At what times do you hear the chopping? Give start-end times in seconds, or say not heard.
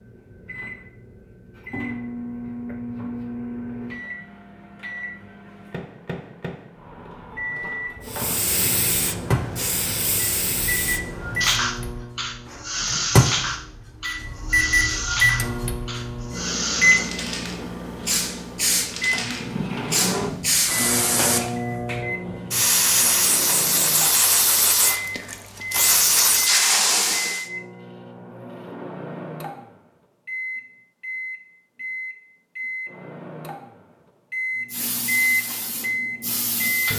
not heard.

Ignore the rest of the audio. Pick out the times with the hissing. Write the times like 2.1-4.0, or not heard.
8.1-27.4, 34.7-36.9.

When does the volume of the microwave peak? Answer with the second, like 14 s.
15 s.